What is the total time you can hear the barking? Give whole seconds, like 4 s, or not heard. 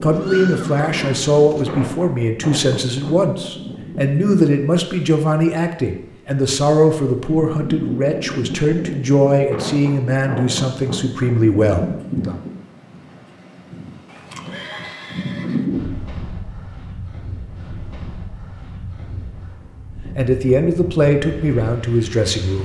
not heard.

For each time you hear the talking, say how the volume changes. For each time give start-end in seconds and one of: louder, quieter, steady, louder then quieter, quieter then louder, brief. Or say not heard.
0.0-12.3 steady
20.1-22.5 brief.